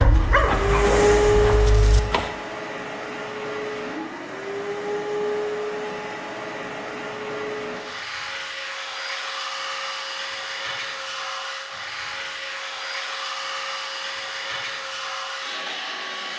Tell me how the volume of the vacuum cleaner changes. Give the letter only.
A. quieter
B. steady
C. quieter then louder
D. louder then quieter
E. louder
A.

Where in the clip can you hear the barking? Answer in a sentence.
The barking can be heard from 0.0 to 2.3 s.